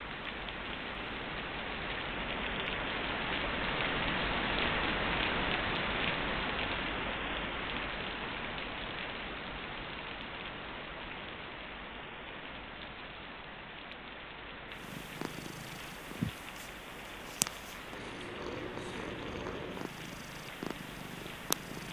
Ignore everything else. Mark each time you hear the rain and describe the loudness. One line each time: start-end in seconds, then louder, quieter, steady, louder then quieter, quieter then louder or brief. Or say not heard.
0.0-21.8 quieter.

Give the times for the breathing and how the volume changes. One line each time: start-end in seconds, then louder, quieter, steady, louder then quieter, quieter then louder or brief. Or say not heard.
not heard.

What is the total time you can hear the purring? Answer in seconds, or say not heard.
7 s.